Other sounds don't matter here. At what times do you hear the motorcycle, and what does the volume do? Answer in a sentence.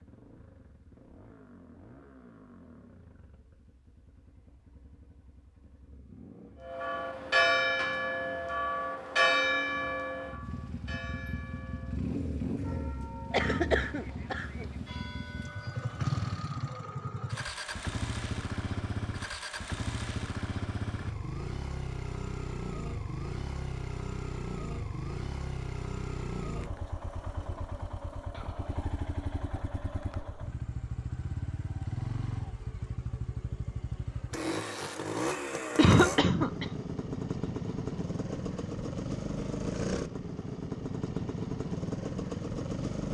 You can hear the motorcycle from 0.0 to 43.0 s, getting louder.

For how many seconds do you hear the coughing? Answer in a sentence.
You can hear the coughing for 2 seconds altogether.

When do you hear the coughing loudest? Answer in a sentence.
The volume of the coughing peaks at 36 seconds.